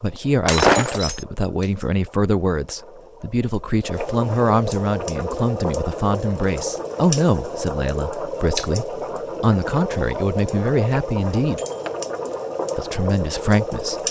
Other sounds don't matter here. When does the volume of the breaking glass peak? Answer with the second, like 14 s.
1 s.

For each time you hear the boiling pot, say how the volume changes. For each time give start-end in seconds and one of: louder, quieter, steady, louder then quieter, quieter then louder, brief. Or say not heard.
0.0-14.0 louder.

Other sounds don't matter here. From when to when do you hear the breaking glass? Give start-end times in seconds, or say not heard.
0.5-1.2, 11.6-12.1.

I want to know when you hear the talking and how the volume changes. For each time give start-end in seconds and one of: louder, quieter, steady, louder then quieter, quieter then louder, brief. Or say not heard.
0.0-11.6 steady
12.8-14.0 brief.